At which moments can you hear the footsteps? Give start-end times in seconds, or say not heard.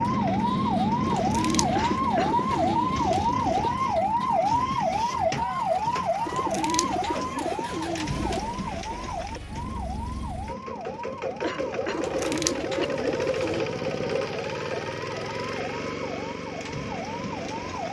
not heard.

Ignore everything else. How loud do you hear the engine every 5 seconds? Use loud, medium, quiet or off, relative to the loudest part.
quiet, quiet, loud, loud.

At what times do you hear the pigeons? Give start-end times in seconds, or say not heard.
1.1-3.8, 6.2-8.5, 11.9-13.7.